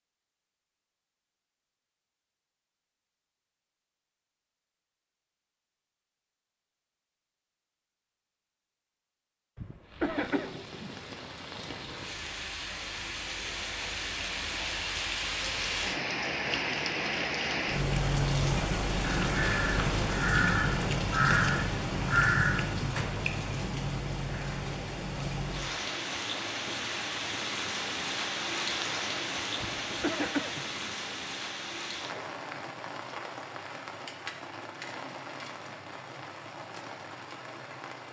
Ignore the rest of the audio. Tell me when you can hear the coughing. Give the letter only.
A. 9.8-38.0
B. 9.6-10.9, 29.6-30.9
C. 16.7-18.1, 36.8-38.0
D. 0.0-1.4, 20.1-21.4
B.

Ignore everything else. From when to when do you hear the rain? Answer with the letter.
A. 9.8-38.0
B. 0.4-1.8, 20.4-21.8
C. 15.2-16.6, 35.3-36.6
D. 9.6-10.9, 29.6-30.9
A.